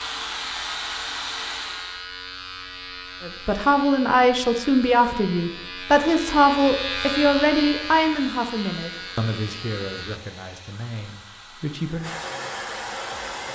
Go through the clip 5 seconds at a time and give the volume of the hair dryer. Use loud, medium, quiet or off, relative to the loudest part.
loud, quiet, loud.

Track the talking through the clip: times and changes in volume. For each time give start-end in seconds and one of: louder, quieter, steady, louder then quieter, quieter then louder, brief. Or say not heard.
3.2-12.2 quieter.